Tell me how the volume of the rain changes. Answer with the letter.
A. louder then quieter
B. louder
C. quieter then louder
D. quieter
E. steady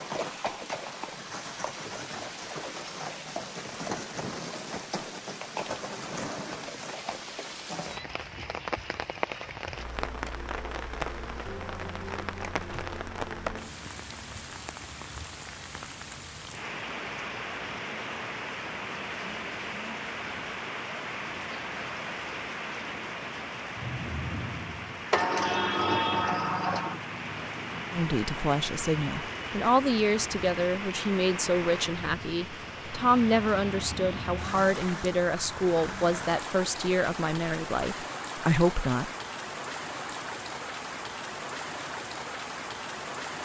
E.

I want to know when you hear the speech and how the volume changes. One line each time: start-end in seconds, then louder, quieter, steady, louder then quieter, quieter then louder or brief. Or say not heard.
27.9-39.1 steady.